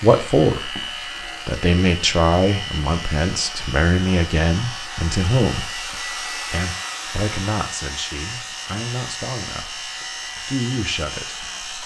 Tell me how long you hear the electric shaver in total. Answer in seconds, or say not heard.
12 s.